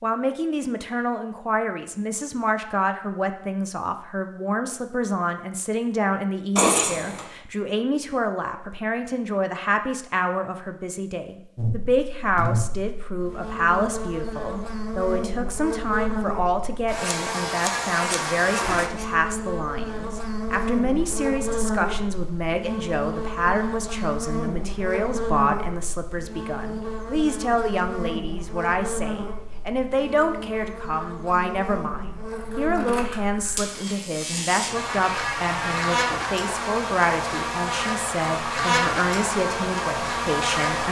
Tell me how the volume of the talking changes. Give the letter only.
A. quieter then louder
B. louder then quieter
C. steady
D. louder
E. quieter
C.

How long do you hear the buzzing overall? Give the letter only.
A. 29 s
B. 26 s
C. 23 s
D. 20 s
A.